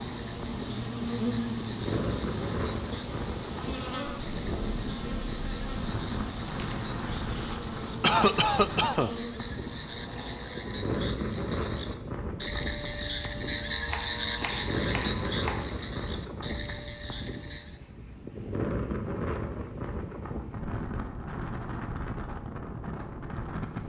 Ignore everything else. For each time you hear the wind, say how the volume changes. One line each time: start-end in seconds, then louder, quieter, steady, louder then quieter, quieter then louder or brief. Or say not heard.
0.0-23.8 steady.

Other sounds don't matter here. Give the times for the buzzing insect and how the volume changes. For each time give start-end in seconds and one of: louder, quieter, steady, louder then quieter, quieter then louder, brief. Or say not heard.
0.0-11.0 quieter.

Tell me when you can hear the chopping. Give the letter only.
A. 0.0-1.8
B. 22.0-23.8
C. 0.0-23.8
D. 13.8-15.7
D.